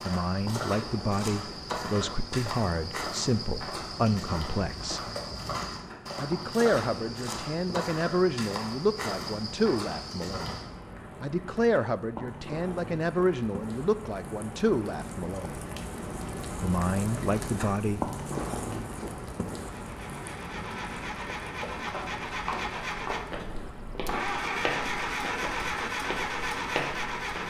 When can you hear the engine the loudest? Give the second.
25 s.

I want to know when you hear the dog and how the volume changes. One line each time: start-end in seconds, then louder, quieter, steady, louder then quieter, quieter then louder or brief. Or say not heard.
not heard.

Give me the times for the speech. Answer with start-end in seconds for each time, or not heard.
0.1-5.0, 6.2-10.6, 11.2-15.6, 16.6-18.1.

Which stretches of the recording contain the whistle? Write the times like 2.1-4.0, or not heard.
not heard.